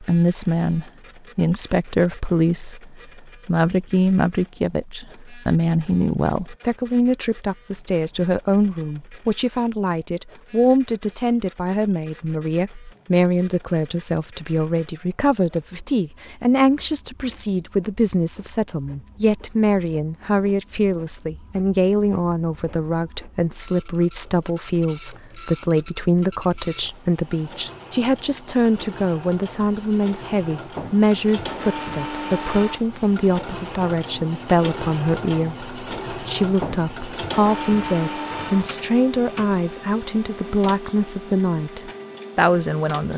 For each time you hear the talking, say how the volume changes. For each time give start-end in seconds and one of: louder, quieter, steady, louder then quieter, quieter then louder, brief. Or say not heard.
0.0-43.1 steady.